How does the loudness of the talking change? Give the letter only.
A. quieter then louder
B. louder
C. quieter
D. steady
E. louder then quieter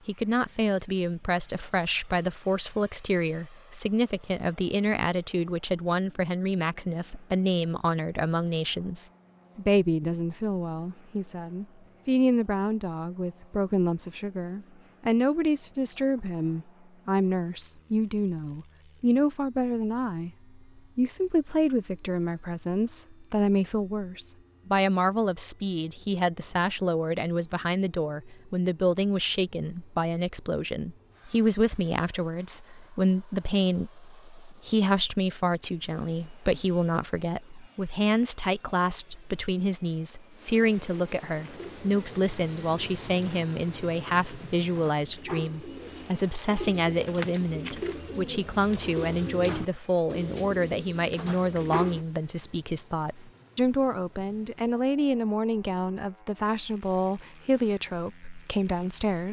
D.